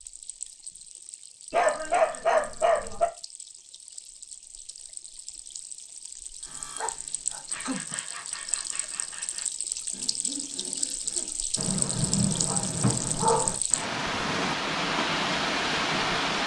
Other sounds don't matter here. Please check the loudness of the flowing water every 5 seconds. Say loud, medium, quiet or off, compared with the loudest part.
quiet, quiet, medium, loud.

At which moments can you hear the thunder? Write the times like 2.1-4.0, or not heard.
11.6-13.6.